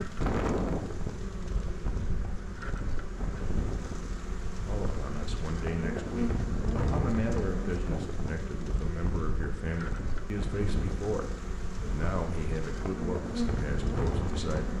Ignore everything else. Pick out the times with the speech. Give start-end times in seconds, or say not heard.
4.7-14.7.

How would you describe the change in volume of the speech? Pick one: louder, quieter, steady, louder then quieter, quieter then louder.
steady.